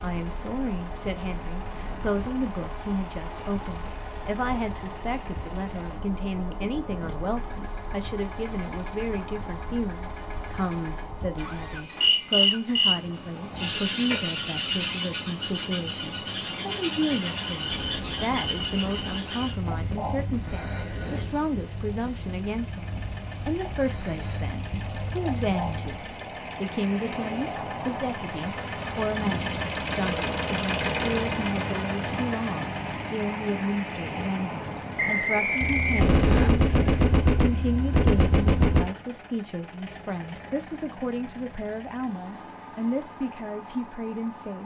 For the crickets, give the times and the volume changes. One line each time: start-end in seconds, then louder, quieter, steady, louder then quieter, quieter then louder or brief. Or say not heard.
0.0-26.1 louder then quieter.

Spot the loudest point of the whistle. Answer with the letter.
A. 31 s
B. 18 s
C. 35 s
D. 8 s
C.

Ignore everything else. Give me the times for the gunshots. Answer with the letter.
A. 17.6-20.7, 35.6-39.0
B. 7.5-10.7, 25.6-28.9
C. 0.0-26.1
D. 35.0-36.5
A.